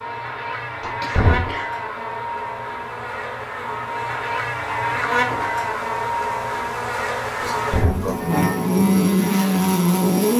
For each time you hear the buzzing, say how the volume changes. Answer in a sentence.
The buzzing can be heard from 0.0 to 10.3 s, getting louder.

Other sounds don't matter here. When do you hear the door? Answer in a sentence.
You can hear the door from 0.8 to 1.6 s and from 7.4 to 8.2 s.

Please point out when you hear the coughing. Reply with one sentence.
The coughing can be heard from 1.0 to 1.7 s and from 7.5 to 8.2 s.